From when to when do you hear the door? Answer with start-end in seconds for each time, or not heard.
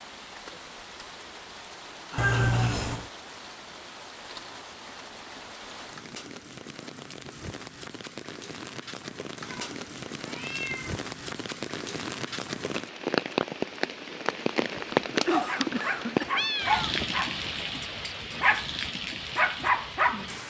not heard.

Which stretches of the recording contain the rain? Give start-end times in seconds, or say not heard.
0.0-20.4.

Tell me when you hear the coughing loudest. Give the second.
15 s.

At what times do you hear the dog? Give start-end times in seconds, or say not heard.
15.1-20.2.